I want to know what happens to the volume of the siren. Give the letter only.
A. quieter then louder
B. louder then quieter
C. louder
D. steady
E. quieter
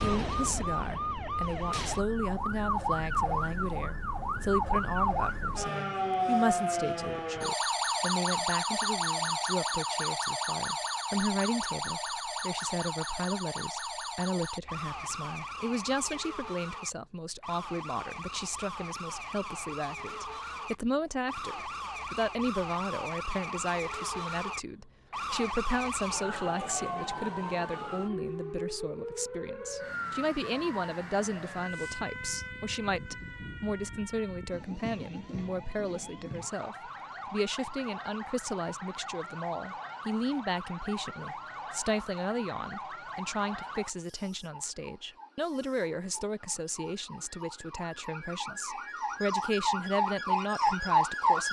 A.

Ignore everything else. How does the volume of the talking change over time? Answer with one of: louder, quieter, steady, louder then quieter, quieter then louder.
steady.